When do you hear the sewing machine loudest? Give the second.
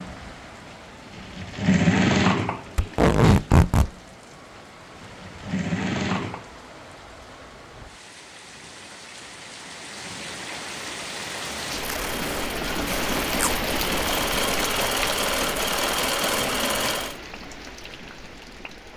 2 s.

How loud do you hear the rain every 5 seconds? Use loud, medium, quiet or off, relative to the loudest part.
quiet, quiet, loud, medium.